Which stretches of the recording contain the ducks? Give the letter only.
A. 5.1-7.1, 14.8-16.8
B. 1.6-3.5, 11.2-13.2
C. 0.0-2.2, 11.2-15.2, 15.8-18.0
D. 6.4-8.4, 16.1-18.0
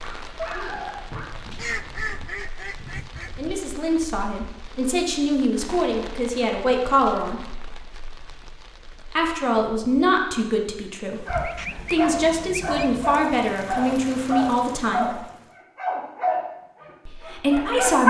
B.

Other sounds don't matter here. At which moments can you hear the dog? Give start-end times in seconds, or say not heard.
0.0-2.2, 11.2-15.2, 15.8-18.0.